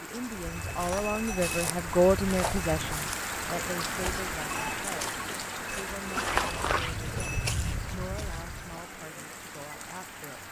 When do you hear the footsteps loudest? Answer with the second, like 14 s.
6 s.